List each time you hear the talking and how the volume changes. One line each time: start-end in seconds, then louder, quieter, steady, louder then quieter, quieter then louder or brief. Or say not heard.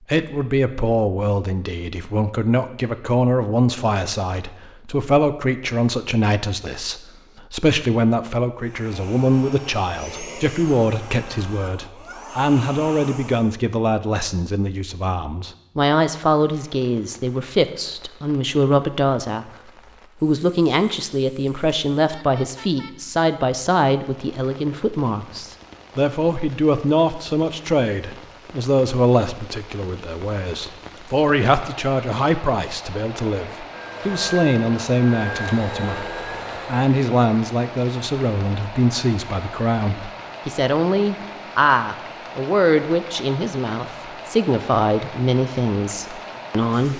0.1-19.5 steady
20.2-46.9 steady.